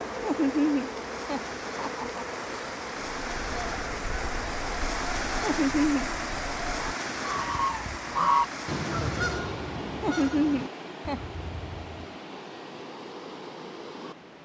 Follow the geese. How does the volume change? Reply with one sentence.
The volume of the geese goes up, then down.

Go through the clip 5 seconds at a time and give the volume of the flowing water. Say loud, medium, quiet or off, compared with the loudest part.
loud, loud, medium.